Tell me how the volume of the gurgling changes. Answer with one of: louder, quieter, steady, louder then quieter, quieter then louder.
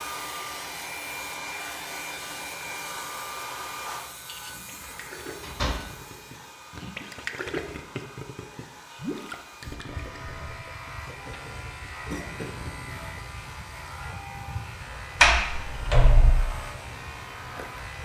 louder then quieter.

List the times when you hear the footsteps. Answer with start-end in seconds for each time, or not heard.
not heard.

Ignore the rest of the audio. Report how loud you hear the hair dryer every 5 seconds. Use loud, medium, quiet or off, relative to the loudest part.
loud, medium, medium, medium.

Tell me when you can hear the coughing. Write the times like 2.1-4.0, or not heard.
12.1-13.0.